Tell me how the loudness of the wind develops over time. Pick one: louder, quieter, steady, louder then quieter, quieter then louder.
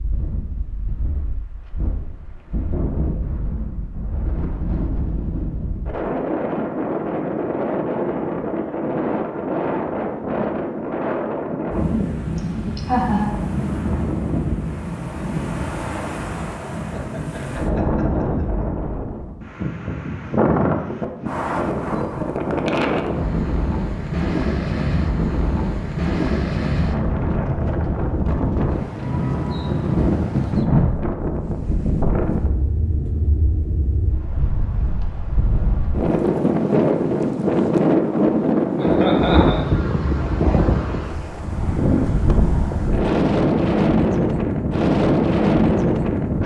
louder.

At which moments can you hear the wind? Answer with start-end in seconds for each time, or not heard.
0.0-46.4.